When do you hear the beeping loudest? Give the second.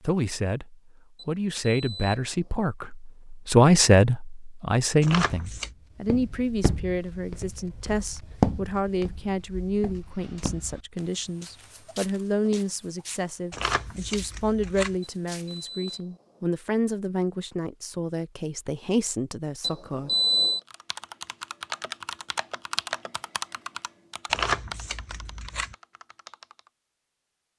20 s.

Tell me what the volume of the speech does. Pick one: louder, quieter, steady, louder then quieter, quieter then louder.
quieter.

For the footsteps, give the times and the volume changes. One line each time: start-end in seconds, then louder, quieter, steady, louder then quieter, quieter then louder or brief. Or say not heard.
6.0-16.1 louder then quieter.